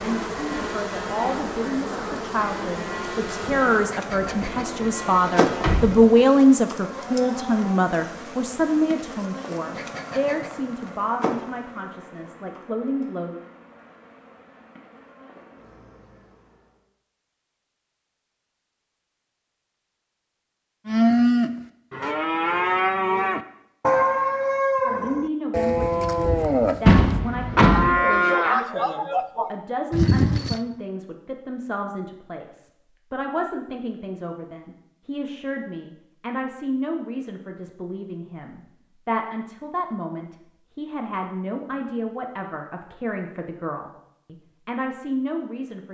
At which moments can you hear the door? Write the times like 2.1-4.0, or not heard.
4.2-6.0, 26.9-27.9.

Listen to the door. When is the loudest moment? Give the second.
27 s.